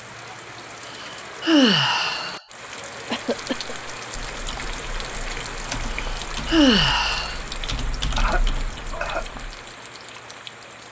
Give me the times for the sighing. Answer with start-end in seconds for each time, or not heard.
1.0-2.4, 6.0-7.4.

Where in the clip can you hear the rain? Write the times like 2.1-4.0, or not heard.
0.0-10.8.